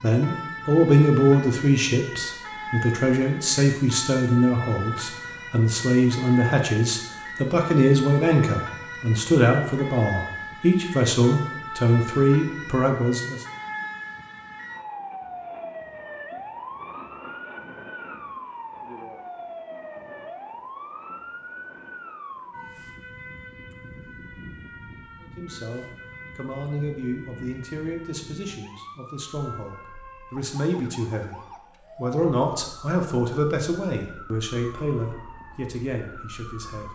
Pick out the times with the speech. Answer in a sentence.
You can hear the speech from 0.0 to 13.4 s and from 25.2 to 36.9 s.